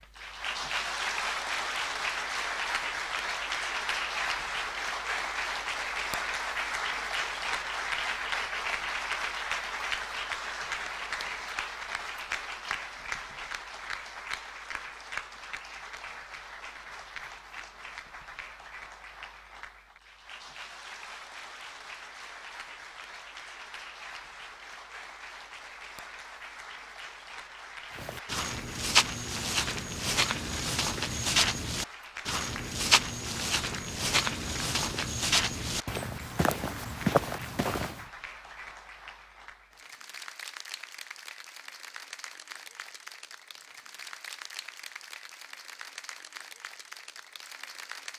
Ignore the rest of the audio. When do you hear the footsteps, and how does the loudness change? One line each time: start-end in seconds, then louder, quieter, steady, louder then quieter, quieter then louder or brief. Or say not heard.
27.9-38.0 steady.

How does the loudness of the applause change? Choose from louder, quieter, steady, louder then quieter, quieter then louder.
quieter.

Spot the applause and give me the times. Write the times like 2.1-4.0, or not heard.
0.0-48.1.